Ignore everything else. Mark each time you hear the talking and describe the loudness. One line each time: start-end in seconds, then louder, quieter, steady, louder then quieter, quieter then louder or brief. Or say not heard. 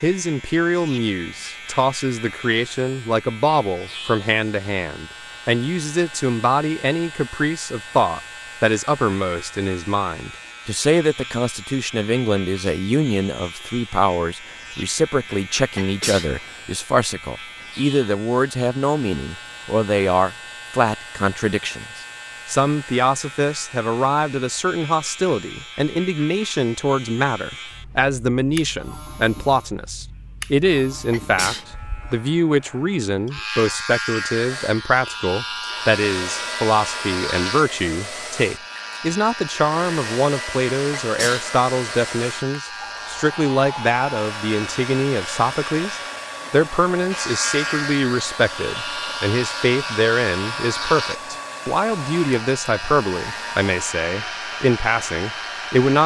0.0-56.0 steady.